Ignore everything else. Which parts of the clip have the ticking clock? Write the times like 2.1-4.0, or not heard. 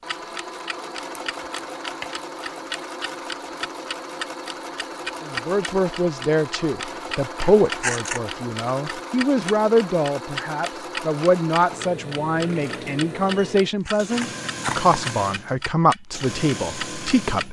0.1-17.4.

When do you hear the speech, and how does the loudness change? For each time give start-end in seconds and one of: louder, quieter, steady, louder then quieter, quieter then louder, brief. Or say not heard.
5.2-17.4 steady.